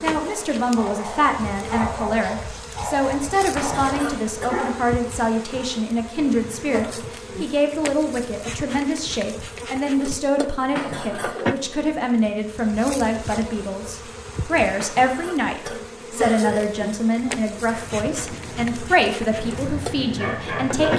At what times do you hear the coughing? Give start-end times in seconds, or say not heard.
3.5-4.5, 10.7-11.3, 14.7-16.6.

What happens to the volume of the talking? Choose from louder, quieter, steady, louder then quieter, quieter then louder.
steady.